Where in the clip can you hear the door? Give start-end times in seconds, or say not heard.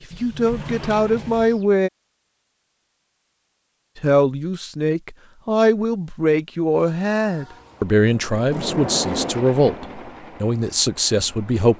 0.1-1.6, 8.5-9.4.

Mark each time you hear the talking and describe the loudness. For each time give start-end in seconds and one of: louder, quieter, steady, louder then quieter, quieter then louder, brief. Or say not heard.
0.1-1.9 brief
4.0-11.7 steady.